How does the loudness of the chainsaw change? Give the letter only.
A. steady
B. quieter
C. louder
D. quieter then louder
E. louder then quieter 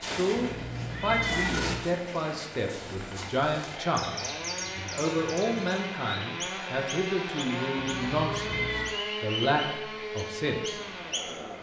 C.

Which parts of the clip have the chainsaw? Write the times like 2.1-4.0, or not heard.
0.1-11.5.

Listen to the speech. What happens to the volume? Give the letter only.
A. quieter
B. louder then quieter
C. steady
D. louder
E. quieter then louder
C.